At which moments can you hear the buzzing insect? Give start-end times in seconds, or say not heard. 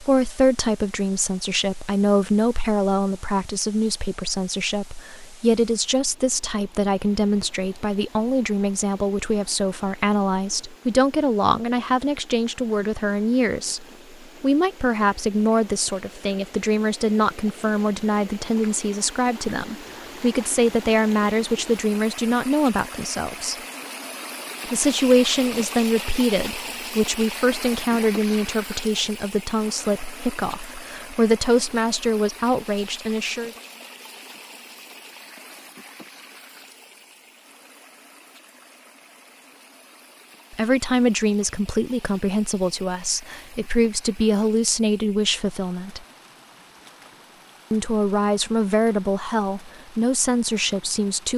not heard.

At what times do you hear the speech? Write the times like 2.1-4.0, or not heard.
0.0-23.6, 24.7-33.5, 40.5-46.0, 47.7-51.3.